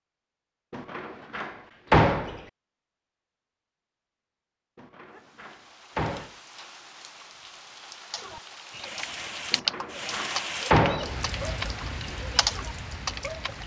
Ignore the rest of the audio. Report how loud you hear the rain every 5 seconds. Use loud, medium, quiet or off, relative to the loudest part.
off, medium, loud.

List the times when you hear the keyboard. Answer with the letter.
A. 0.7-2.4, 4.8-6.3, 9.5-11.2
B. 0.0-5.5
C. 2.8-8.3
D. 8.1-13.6
D.